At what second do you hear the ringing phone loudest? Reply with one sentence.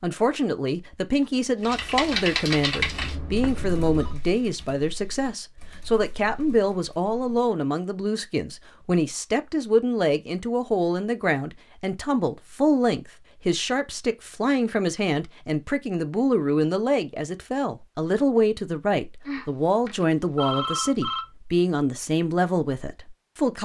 The volume of the ringing phone peaks at 21 seconds.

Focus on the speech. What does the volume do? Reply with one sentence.
The volume of the speech stays about the same.